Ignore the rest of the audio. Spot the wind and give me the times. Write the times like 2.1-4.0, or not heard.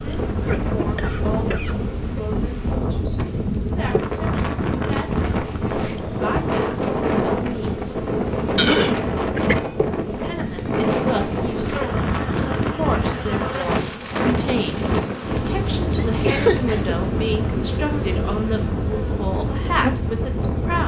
0.0-20.8.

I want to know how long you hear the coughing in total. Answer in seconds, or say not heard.
4 s.